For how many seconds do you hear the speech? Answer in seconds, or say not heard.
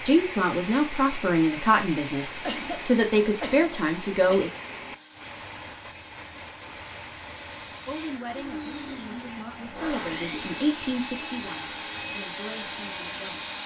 10 s.